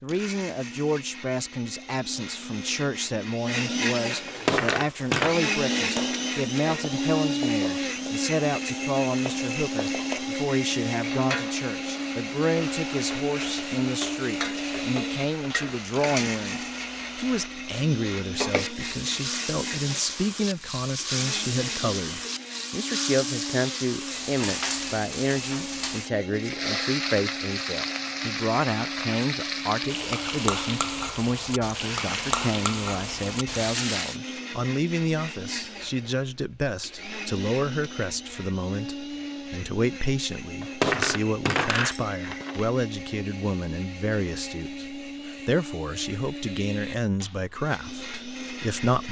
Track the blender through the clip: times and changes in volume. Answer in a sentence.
You can hear the blender from 0.0 to 49.0 s, getting quieter.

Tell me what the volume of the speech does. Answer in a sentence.
The volume of the speech stays about the same.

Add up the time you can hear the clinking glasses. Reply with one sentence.
You can hear the clinking glasses for 3 seconds altogether.